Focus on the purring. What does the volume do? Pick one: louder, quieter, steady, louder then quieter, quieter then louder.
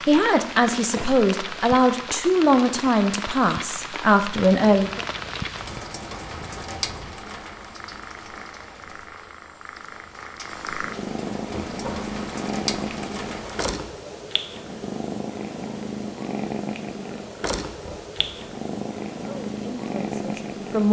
louder.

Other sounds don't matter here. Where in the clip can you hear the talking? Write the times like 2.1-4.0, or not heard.
0.1-5.0, 19.2-20.8.